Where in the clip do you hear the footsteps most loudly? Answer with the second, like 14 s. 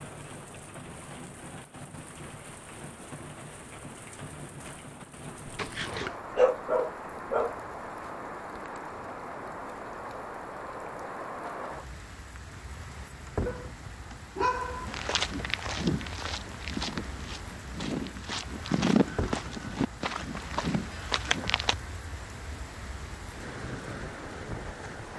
19 s.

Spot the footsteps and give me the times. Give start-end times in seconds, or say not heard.
14.8-21.8.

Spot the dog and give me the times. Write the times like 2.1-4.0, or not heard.
5.5-7.5, 13.4-15.1.